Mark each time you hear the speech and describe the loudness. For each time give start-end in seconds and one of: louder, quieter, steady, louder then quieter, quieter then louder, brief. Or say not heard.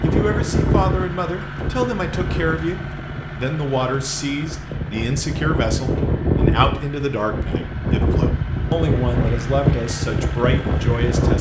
0.0-11.3 steady.